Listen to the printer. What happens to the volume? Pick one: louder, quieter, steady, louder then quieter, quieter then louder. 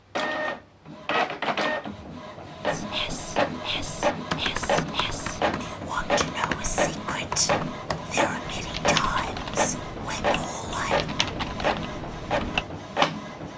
steady.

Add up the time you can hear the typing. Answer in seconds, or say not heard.
8 s.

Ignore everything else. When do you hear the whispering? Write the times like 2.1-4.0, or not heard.
2.6-11.1.